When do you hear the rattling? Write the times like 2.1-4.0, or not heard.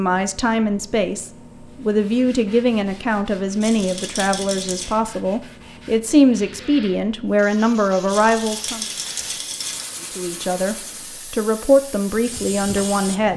3.6-5.0, 8.1-9.8.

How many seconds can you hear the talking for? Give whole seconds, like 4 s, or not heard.
12 s.